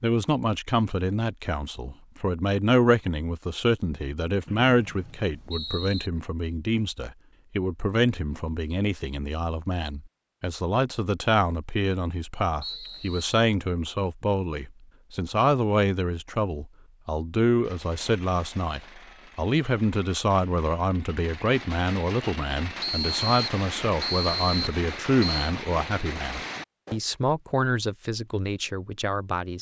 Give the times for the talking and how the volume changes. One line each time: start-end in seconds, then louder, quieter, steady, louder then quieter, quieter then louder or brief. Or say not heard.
0.0-29.5 steady.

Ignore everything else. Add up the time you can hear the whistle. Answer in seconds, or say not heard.
5 s.